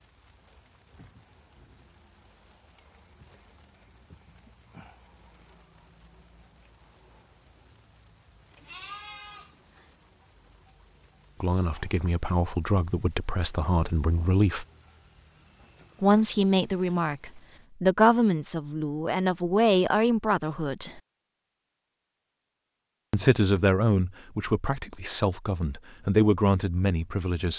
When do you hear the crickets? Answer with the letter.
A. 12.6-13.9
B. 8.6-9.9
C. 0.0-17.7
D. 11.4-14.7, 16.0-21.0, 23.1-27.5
C.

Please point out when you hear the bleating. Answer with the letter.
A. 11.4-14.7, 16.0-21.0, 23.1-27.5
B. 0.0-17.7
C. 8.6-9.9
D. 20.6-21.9
C.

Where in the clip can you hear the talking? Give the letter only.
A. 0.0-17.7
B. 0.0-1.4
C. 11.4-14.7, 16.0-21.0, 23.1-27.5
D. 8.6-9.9
C.